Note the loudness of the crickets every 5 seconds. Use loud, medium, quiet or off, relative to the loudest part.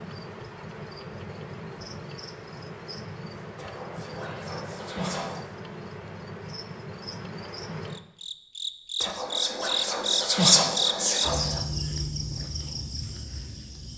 medium, loud, loud.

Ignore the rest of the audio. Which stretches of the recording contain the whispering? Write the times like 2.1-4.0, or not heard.
3.5-5.4, 9.0-11.6.